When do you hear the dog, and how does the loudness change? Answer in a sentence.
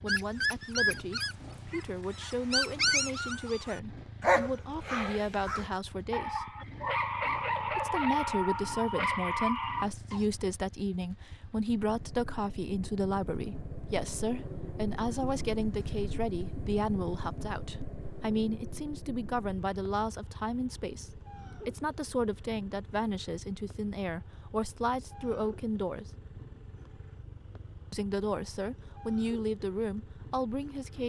The dog can be heard from 0.1 to 10.2 s, at a steady volume.